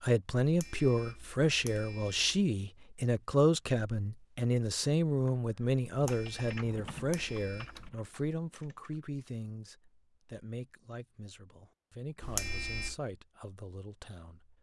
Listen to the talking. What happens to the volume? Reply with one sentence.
The volume of the talking goes down.